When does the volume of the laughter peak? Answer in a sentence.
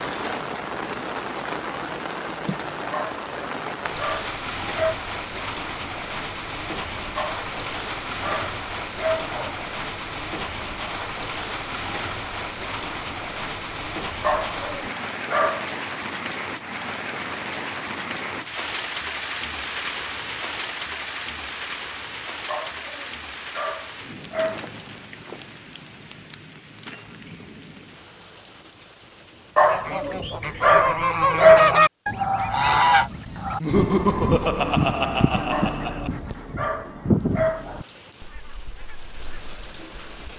The loudest moment of the laughter is at 34 seconds.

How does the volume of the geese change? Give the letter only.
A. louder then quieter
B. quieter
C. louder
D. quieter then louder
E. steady
B.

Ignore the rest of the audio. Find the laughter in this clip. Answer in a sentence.
The laughter can be heard from 33.6 to 36.3 s.